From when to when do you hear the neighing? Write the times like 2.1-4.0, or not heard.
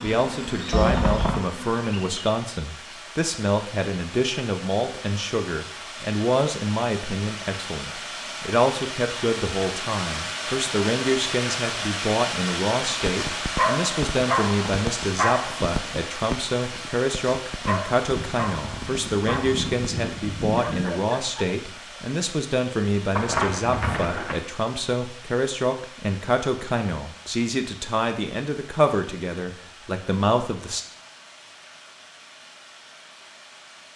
0.7-1.4, 18.1-20.9, 23.1-24.4.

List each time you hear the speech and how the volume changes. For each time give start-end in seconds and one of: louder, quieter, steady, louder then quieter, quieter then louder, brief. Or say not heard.
0.0-30.9 steady.